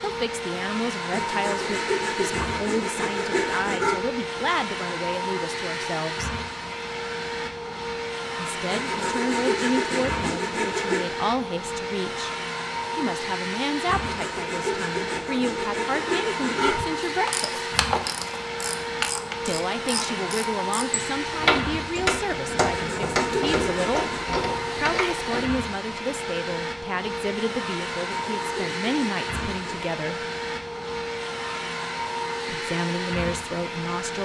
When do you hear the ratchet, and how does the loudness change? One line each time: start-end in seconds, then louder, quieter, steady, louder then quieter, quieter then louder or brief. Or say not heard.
16.6-25.4 steady.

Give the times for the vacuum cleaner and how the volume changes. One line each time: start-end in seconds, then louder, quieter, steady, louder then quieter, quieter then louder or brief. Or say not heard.
0.0-34.1 steady.